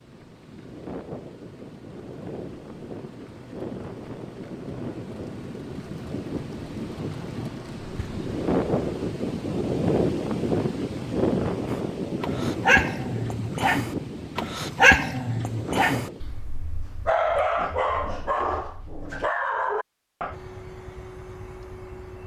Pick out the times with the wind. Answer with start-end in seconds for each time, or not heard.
0.0-16.2.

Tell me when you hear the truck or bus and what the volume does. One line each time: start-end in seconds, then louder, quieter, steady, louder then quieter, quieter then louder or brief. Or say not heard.
0.0-9.2 louder
20.3-22.2 brief.